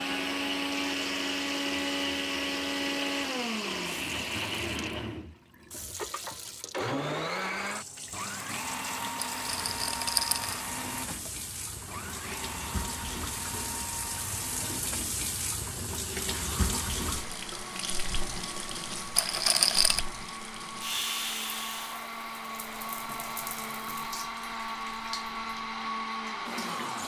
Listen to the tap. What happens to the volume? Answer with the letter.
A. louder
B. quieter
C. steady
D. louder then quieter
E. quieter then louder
D.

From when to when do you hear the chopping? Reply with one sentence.
You can't hear the chopping here.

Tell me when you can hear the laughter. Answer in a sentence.
You can't hear the laughter here.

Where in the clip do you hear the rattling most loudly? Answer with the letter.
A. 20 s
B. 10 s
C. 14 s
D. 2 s
A.